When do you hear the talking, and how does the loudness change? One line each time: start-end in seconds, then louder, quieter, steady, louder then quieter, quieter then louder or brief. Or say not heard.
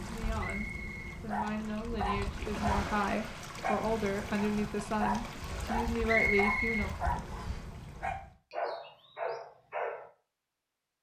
0.0-7.0 louder.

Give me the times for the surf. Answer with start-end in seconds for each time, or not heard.
0.0-8.3.